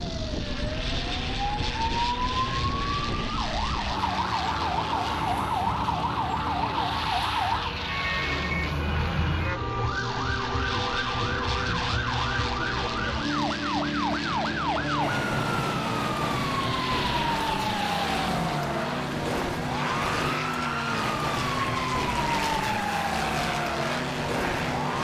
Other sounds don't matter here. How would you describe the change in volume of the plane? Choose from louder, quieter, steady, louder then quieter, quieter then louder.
steady.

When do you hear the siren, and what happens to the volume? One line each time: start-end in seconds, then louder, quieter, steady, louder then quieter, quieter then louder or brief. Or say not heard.
0.0-25.0 steady.